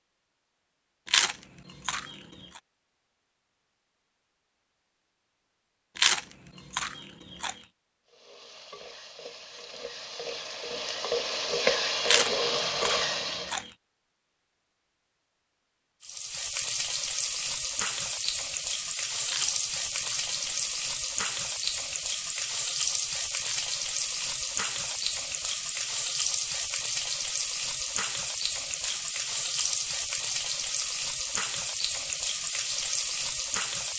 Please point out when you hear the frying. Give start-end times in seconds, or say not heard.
8.1-13.6, 16.0-33.9.